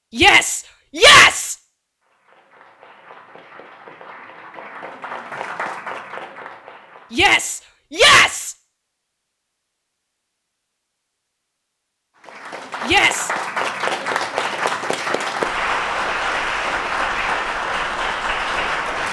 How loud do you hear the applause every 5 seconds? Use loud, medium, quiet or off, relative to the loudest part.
quiet, medium, loud, loud.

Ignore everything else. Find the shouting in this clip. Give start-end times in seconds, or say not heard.
0.1-1.6, 7.1-8.6, 12.8-13.3.